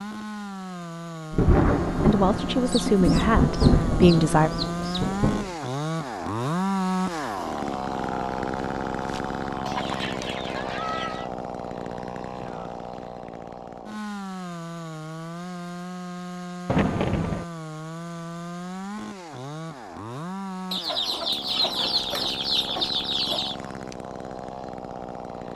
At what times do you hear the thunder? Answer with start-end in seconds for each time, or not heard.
1.3-5.5, 16.6-17.4.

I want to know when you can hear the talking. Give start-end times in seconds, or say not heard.
1.9-4.5.